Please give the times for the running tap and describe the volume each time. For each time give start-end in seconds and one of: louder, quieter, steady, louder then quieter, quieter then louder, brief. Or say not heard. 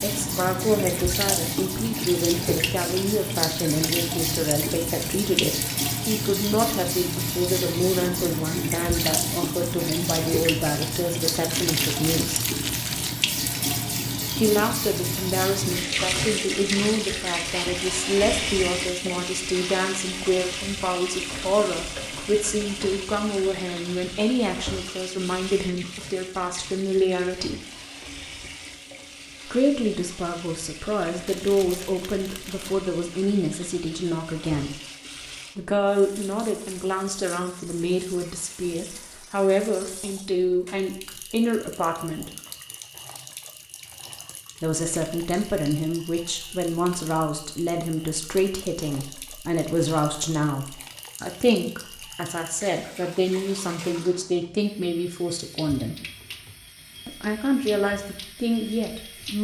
0.0-59.3 quieter.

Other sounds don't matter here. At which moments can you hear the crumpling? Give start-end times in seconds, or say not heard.
11.5-13.2, 31.2-32.8.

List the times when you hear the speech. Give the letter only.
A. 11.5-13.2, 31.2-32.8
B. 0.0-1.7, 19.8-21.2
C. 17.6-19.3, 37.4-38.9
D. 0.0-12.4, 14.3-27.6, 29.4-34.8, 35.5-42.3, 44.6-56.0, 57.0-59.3
D.